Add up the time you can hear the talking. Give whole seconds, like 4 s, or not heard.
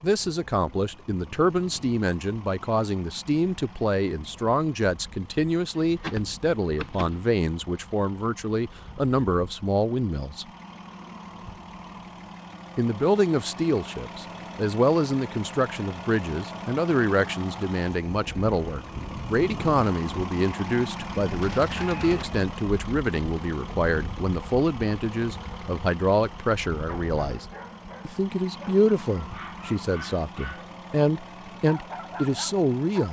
30 s.